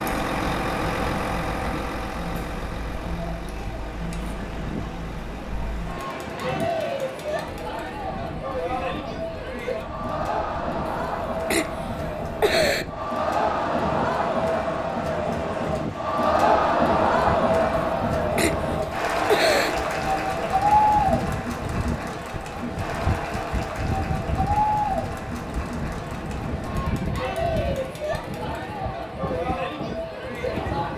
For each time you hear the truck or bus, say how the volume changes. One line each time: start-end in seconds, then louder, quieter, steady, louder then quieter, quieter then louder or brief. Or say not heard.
0.0-5.8 quieter.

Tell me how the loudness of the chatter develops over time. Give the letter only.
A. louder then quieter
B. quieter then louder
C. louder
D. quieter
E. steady
A.